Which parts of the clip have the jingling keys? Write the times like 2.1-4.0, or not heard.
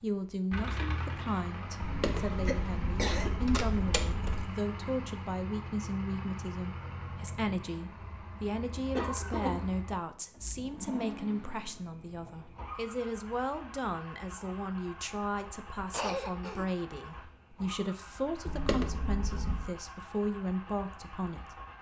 1.8-4.5, 18.4-19.7.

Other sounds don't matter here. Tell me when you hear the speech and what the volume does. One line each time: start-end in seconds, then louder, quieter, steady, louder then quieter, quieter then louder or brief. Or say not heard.
0.0-21.6 steady.